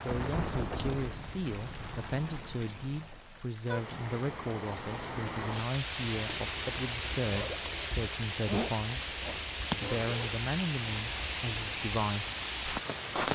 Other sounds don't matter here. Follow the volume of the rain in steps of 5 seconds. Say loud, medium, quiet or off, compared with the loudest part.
medium, loud, loud.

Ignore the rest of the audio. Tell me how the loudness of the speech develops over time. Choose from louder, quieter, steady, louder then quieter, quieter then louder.
steady.